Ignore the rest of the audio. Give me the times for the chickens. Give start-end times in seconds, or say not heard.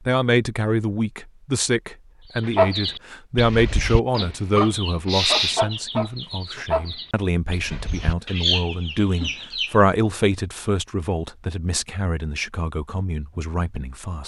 2.4-9.7.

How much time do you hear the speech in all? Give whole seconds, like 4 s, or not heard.
14 s.